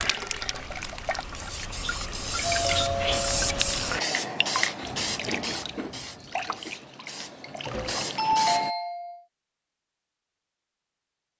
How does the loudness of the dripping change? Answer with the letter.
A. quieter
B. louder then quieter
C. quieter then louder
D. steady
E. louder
B.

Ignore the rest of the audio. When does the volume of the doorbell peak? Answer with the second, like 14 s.
8 s.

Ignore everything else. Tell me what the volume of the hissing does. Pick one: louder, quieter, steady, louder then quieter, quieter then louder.
louder then quieter.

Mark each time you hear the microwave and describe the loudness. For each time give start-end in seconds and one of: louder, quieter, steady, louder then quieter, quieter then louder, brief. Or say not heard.
not heard.